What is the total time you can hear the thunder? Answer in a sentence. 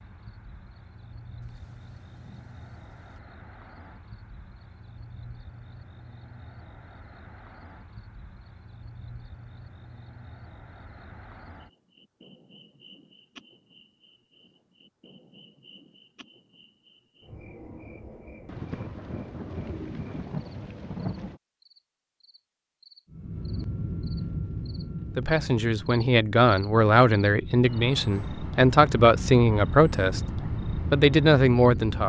You can hear the thunder for 5 seconds altogether.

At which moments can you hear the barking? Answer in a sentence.
The barking can't be heard in this clip.